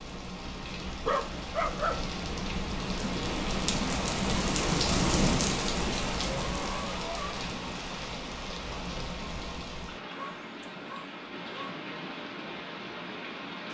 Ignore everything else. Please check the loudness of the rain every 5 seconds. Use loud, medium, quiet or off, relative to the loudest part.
loud, loud, medium.